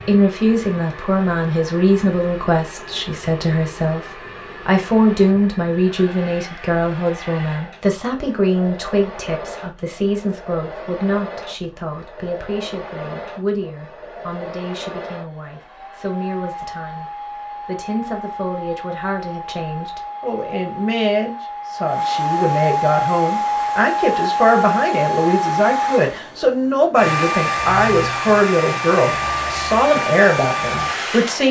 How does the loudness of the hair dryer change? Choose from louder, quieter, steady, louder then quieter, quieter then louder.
louder.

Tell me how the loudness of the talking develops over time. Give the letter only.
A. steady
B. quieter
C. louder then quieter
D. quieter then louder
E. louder
D.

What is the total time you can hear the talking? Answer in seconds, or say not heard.
31 s.